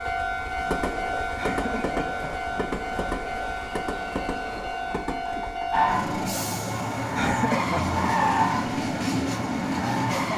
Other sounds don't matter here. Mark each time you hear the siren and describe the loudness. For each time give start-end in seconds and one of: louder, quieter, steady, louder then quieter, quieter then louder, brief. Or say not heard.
5.7-10.3 louder then quieter.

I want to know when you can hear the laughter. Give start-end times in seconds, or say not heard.
1.4-2.5, 7.2-7.8.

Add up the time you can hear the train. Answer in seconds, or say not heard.
10 s.